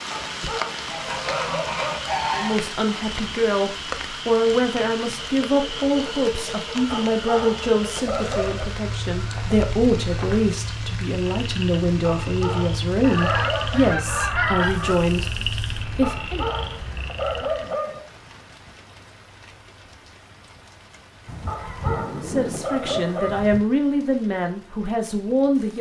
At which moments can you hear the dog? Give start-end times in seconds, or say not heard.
0.1-2.1, 6.9-8.7, 12.0-13.8, 16.0-18.0, 21.4-23.4.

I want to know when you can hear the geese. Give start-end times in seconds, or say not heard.
0.8-2.6, 8.2-10.6, 13.0-15.0, 21.2-23.6.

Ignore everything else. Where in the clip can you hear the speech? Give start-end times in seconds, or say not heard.
2.4-16.4, 22.1-25.7.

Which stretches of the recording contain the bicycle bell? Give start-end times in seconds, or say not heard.
not heard.